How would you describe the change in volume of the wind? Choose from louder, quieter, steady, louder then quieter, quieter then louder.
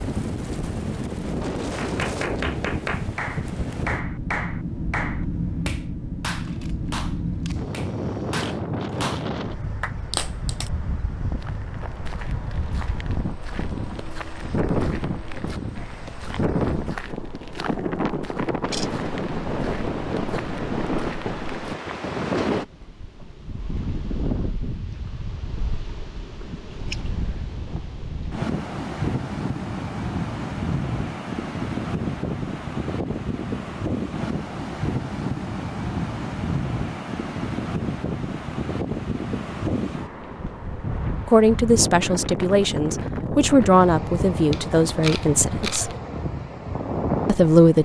steady.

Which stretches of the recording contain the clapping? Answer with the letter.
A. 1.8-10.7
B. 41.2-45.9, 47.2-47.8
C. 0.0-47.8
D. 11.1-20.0
A.